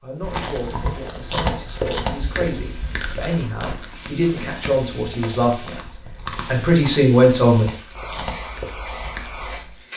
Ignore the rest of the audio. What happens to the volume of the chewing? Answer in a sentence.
The loudness of the chewing goes down.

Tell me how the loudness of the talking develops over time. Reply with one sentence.
The volume of the talking goes up.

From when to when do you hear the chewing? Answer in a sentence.
The chewing can be heard from 0.2 to 9.7 s.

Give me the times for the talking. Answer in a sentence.
The talking can be heard from 0.0 to 7.7 s.